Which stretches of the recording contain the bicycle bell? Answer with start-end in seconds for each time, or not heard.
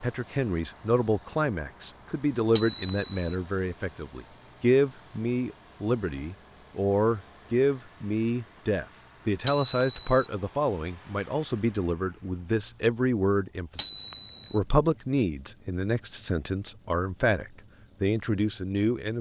2.5-3.4, 9.4-10.2, 13.8-14.6.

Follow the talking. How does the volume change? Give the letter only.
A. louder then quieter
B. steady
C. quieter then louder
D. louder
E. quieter
B.